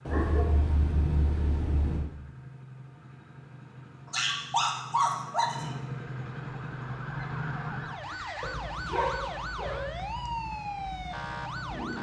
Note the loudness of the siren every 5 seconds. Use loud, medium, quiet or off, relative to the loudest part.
off, loud, loud.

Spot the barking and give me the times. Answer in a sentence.
You can hear the barking from 0.1 to 2.0 s, from 4.1 to 5.7 s and from 8.4 to 9.8 s.